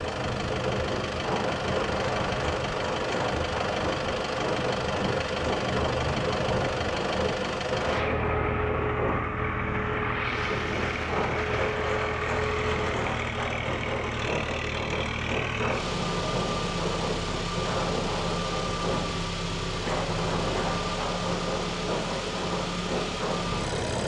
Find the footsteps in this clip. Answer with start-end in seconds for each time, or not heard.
not heard.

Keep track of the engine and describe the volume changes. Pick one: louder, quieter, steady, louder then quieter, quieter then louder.
steady.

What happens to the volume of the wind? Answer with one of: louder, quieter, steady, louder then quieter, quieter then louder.
steady.